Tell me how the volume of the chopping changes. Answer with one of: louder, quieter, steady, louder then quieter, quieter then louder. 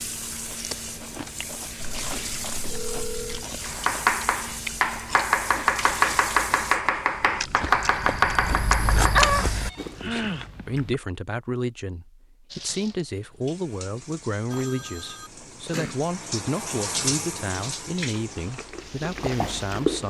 steady.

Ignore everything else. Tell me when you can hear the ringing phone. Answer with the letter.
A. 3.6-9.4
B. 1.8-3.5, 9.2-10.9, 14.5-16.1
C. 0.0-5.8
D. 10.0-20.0
B.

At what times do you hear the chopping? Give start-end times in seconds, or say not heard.
3.6-9.4.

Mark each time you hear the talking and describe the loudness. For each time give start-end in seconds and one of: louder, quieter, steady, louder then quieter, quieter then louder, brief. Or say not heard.
10.0-20.0 steady.